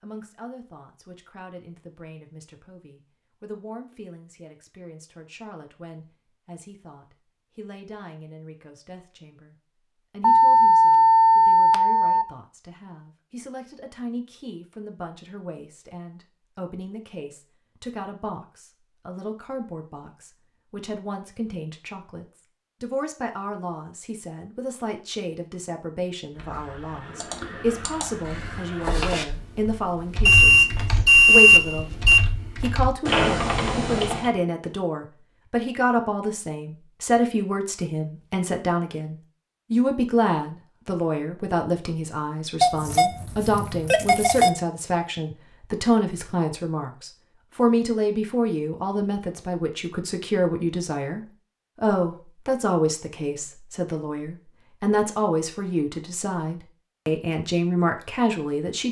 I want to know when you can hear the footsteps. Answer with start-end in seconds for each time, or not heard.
not heard.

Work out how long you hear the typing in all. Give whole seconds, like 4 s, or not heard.
8 s.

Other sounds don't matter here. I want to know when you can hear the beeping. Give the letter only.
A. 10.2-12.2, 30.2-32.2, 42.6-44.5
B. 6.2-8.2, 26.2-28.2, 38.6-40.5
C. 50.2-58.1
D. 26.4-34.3
A.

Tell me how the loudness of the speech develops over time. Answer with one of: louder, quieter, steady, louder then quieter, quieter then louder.
louder.